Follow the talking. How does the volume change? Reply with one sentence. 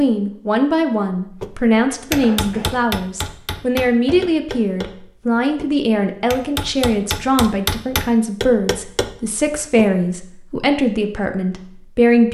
The loudness of the talking stays about the same.